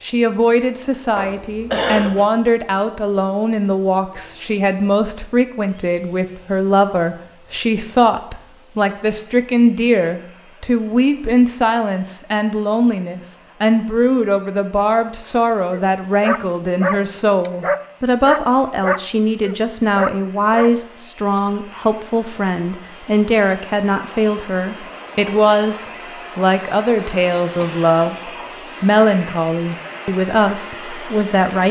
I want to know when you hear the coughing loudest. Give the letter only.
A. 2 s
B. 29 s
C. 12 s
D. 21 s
A.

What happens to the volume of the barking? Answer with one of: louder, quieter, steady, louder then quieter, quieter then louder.
steady.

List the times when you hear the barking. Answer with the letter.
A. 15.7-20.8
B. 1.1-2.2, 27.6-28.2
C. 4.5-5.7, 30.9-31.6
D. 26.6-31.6
A.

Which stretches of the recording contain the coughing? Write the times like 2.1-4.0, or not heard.
1.1-2.2, 27.6-28.2.